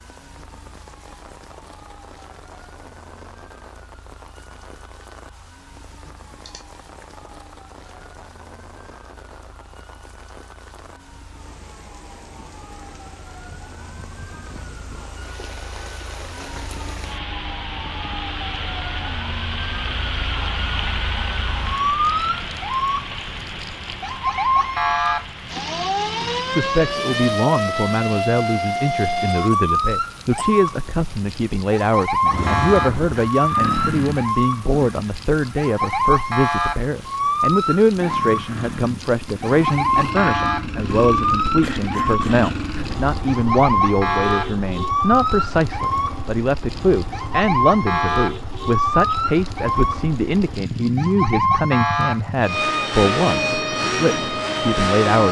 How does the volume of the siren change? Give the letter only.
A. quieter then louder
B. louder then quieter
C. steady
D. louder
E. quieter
D.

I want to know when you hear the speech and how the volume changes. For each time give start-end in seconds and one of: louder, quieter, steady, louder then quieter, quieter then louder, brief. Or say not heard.
26.5-55.2 steady.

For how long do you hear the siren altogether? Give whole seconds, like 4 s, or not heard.
55 s.